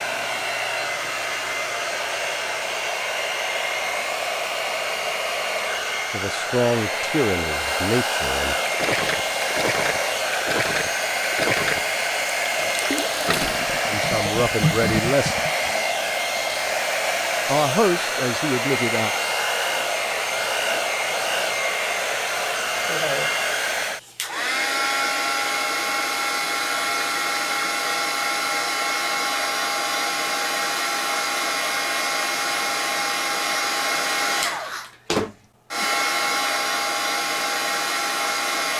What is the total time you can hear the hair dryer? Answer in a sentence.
The hair dryer can be heard for 39 seconds in total.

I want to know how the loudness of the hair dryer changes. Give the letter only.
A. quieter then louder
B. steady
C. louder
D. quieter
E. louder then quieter
B.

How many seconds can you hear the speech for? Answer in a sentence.
The speech can be heard for 6 seconds in total.